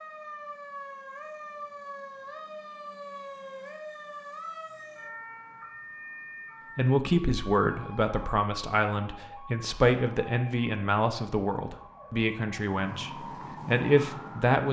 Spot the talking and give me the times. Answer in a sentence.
The talking can be heard from 6.8 to 14.6 s.